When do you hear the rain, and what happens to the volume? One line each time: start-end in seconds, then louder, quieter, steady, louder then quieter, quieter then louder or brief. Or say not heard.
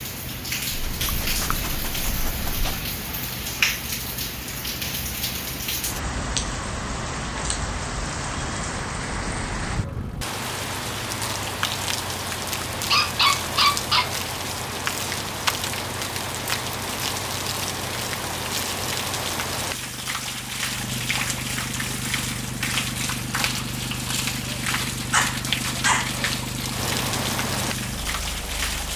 0.0-28.9 steady.